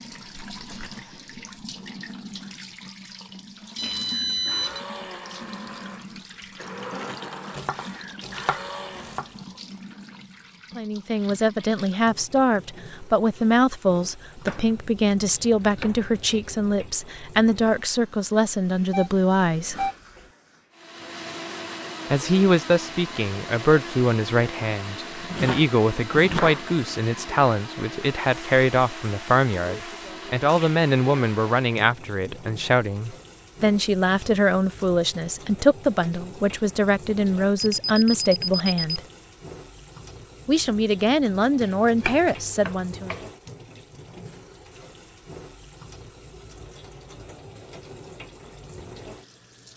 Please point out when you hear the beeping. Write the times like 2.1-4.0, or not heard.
3.8-4.8, 18.8-20.2, 37.6-39.0.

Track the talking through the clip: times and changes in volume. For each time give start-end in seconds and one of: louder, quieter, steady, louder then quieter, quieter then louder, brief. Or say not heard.
10.8-19.9 steady
22.1-39.0 steady
40.5-43.1 brief.